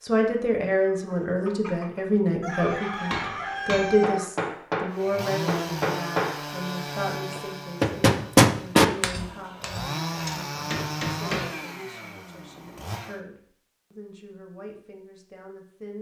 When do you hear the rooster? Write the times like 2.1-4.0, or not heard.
0.8-4.3.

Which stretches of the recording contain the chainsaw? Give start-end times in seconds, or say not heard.
4.9-13.2.